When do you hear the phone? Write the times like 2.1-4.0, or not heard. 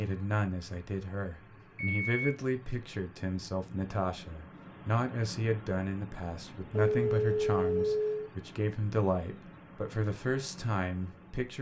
1.8-2.3, 6.8-8.2.